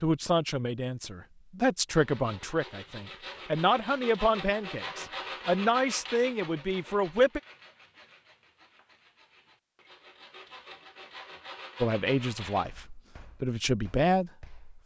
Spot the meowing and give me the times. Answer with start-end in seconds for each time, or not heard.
not heard.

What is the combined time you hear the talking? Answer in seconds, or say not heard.
10 s.